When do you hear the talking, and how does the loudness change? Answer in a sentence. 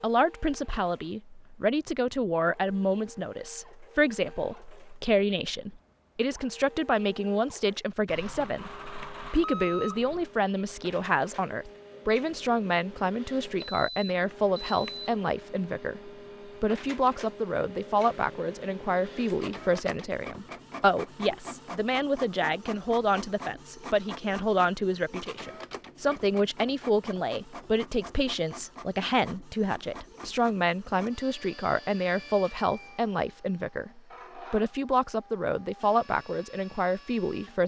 You can hear the talking from 0.0 to 37.6 s, at a steady volume.